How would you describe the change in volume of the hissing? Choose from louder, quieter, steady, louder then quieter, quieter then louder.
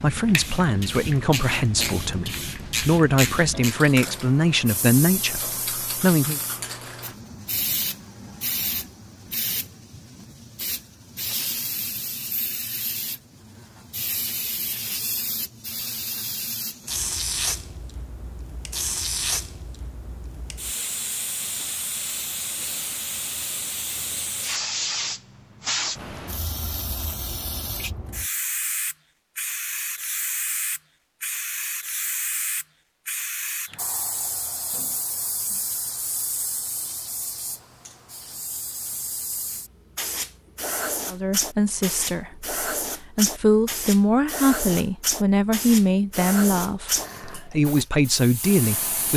steady.